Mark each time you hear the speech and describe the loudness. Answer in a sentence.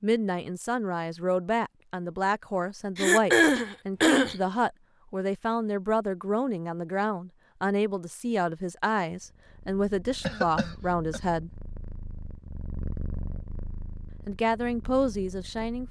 You can hear the speech from 0.0 to 11.5 s, at a steady volume; and briefly from 14.2 to 15.8 s.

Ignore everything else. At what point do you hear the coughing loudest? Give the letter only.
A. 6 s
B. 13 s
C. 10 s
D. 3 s
D.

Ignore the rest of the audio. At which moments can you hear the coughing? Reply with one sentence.
The coughing can be heard from 3.0 to 4.3 s and from 10.2 to 11.2 s.